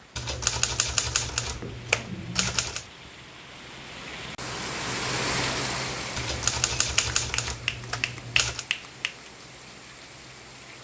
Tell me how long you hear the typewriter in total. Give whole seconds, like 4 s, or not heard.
5 s.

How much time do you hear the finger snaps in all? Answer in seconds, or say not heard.
3 s.